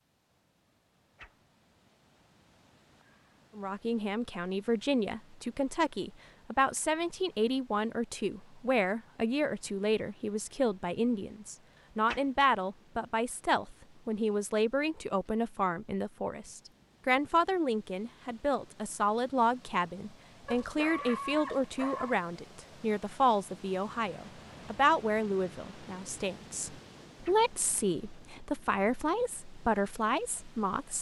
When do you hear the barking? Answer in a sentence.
The barking can be heard from 20.4 to 22.2 s.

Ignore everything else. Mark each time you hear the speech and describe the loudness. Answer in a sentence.
You can hear the speech from 3.5 to 30.9 s, at a steady volume.